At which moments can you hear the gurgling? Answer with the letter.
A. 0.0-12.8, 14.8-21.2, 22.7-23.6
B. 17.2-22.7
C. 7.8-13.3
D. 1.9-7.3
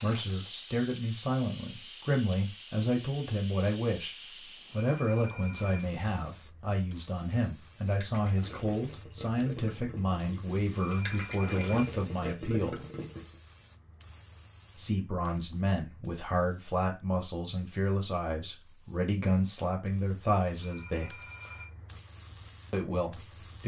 C.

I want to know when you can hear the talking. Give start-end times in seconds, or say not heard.
0.0-12.8, 14.8-21.2, 22.7-23.6.